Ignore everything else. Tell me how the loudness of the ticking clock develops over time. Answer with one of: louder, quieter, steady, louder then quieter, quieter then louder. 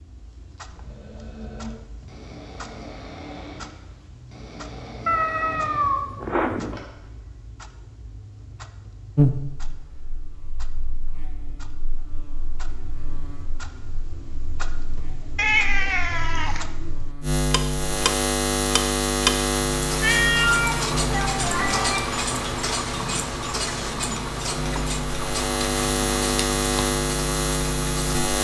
louder.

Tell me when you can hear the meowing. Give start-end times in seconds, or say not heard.
5.0-6.8, 15.3-16.6, 20.0-22.0.